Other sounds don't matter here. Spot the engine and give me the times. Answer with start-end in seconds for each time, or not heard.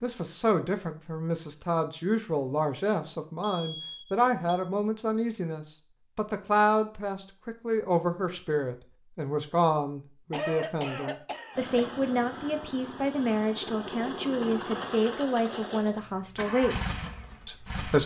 11.5-18.0.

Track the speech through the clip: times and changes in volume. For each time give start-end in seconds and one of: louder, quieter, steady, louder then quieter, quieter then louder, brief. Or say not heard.
0.0-18.0 steady.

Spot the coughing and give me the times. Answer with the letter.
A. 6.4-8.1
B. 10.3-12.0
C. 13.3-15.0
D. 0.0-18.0
B.